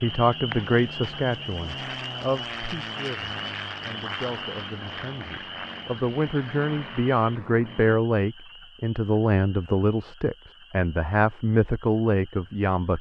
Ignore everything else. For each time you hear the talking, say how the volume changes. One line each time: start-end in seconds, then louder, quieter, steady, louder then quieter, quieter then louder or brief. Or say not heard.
0.0-12.9 quieter then louder.